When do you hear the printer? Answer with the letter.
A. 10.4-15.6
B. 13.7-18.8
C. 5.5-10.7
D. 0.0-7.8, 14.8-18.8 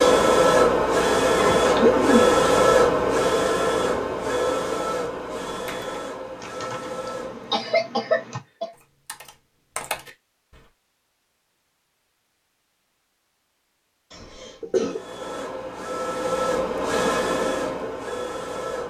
D.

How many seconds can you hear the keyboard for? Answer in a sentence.
The keyboard can be heard for 5 seconds in total.